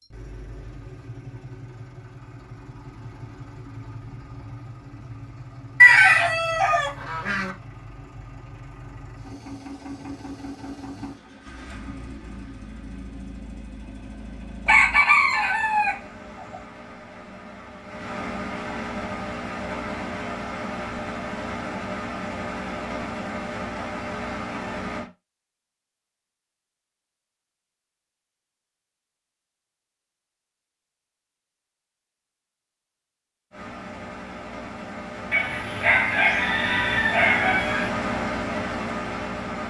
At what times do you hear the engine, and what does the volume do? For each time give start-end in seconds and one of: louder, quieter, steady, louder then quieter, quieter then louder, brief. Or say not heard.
0.0-25.1 louder
33.5-39.6 louder.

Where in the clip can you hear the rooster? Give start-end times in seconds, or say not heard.
5.8-7.5, 14.7-16.6, 35.3-37.9.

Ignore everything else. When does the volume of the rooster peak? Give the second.
6 s.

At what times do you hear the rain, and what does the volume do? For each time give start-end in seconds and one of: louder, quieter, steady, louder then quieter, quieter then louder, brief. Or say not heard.
not heard.